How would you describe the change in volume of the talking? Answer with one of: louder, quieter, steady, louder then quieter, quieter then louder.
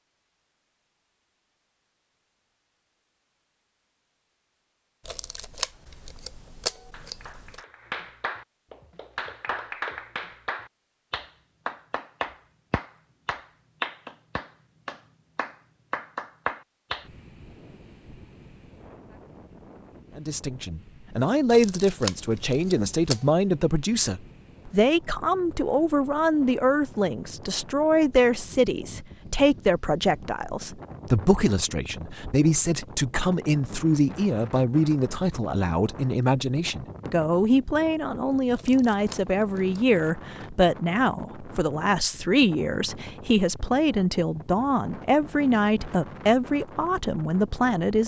steady.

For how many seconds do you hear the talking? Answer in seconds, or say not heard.
28 s.